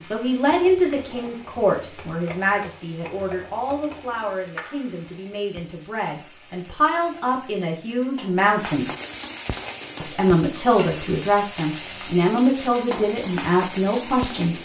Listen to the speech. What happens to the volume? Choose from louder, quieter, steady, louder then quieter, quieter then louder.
quieter then louder.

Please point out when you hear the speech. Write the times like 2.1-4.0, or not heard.
0.0-8.9, 10.0-14.6.